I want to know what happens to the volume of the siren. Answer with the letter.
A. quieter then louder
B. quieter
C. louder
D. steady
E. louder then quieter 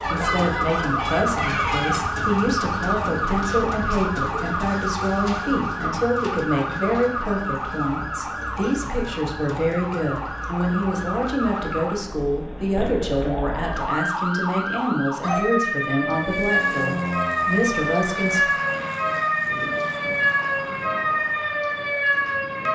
A.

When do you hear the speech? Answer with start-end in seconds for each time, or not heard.
0.1-18.4.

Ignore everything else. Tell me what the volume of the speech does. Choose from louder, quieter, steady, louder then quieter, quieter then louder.
steady.